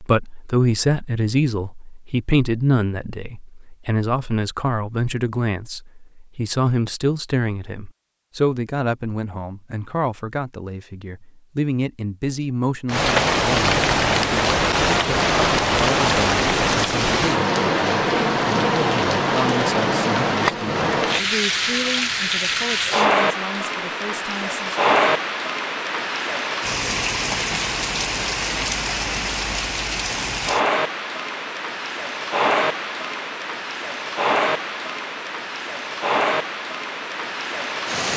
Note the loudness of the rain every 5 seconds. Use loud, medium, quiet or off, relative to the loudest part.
off, off, loud, loud, loud, medium, medium, medium.